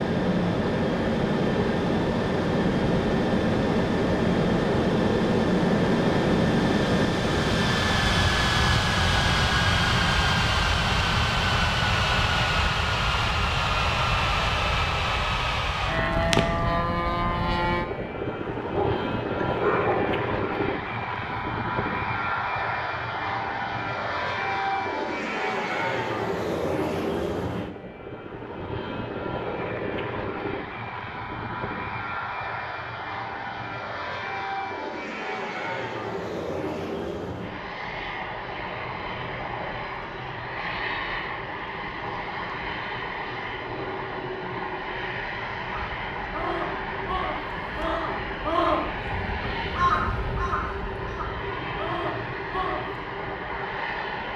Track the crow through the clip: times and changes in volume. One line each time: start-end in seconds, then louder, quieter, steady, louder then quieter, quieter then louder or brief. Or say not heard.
45.6-53.0 louder then quieter.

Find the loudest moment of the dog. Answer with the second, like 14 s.
20 s.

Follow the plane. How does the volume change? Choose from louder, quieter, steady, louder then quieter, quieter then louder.
quieter.